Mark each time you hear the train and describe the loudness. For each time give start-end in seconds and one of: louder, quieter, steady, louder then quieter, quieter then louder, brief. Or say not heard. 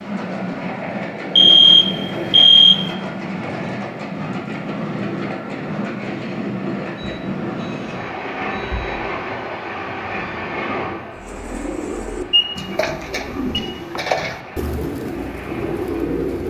0.0-16.4 quieter.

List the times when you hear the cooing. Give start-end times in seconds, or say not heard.
11.2-16.4.